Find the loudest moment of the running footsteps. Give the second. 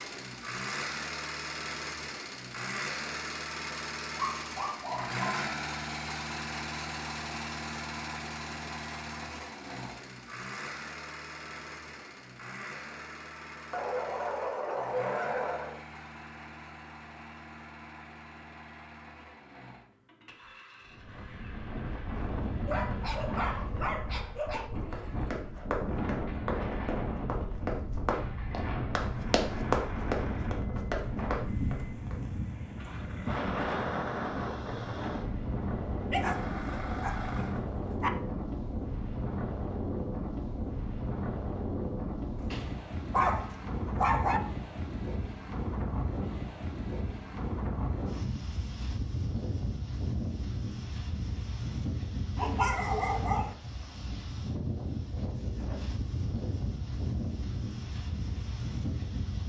30 s.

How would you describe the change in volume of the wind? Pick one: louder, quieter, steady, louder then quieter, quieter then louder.
steady.